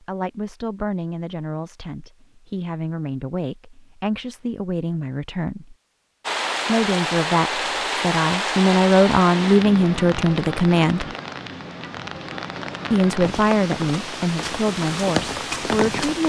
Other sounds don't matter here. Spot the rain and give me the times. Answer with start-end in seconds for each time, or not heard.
6.2-16.2.